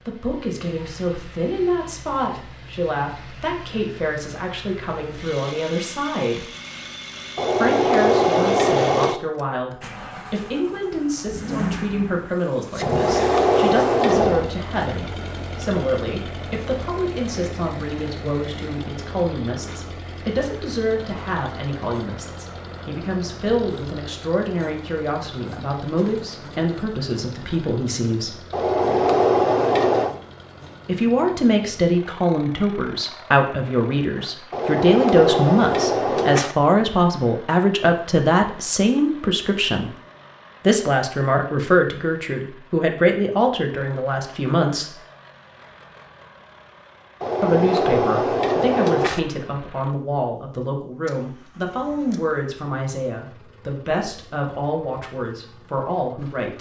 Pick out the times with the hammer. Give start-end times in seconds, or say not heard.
7.3-9.2, 12.8-14.5, 28.5-30.1, 34.5-36.5, 47.2-49.2.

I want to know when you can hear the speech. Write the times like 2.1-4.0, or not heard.
0.1-6.5, 7.5-28.4, 30.9-39.9, 40.6-45.0, 47.4-56.5.